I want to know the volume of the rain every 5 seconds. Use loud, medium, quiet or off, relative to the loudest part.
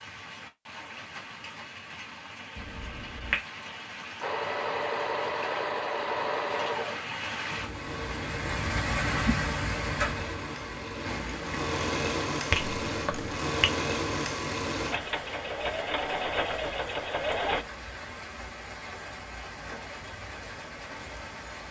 medium, loud, loud, medium, medium.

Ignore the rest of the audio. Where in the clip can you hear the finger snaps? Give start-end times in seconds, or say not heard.
2.5-3.5, 12.5-13.7.